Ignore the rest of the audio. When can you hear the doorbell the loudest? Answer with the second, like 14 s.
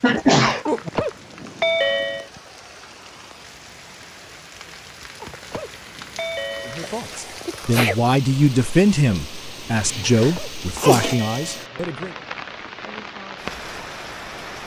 2 s.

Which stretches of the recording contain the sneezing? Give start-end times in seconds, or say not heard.
0.0-0.9, 6.8-8.0, 9.8-11.2.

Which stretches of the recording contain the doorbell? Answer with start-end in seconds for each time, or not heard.
0.7-2.2, 5.2-7.0, 10.2-11.8.